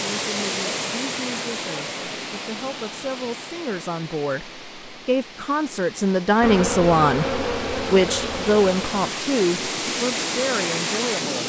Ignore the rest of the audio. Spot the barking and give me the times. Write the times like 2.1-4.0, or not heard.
not heard.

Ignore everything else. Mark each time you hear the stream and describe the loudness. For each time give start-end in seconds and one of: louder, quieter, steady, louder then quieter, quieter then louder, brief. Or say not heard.
0.0-11.4 quieter then louder.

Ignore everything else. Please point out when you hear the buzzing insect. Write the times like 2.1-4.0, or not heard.
6.4-9.1.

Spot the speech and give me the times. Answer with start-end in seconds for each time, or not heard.
0.0-11.4.